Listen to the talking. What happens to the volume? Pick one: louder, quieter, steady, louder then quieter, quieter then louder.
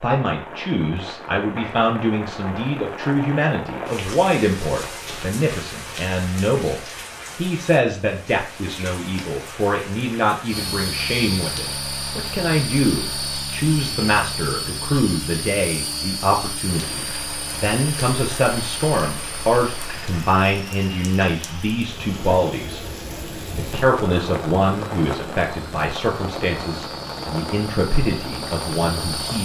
steady.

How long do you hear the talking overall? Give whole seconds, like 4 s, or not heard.
29 s.